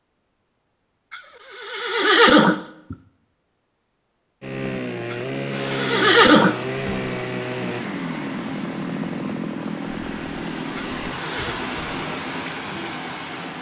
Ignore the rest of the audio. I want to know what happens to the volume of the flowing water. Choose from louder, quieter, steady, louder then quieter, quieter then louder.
louder.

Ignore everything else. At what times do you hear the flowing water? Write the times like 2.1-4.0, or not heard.
5.5-13.5.